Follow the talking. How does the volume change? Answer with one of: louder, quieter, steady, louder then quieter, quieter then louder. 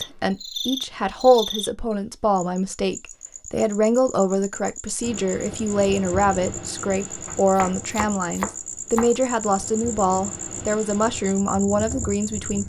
steady.